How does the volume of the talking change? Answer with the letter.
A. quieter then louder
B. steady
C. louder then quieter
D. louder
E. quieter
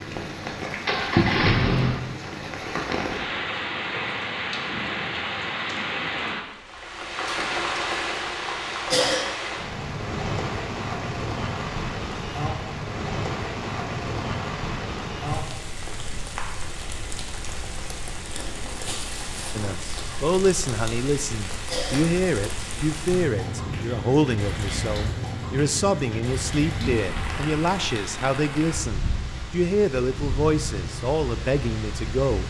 B.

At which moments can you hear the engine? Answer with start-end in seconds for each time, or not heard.
0.0-2.5.